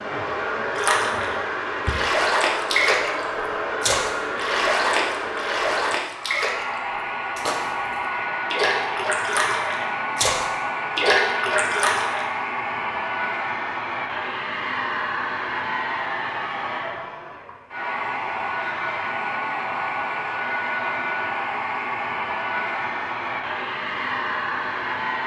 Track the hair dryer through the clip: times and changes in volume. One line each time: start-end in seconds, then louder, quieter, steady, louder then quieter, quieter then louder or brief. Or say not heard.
0.0-25.2 steady.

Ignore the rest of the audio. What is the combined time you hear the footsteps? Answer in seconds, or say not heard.
not heard.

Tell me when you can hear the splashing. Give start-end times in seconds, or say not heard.
0.8-6.8, 7.3-12.3.